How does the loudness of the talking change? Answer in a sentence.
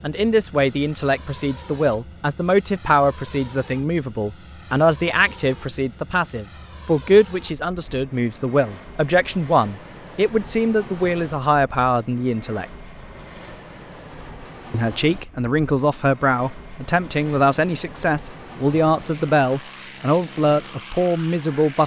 The loudness of the talking stays about the same.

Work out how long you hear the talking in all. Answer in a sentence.
The talking can be heard for 20 seconds in total.